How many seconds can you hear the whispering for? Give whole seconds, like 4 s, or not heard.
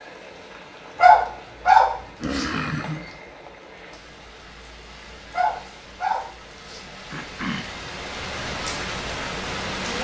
not heard.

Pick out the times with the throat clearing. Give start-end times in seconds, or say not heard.
2.2-3.0, 7.1-7.8.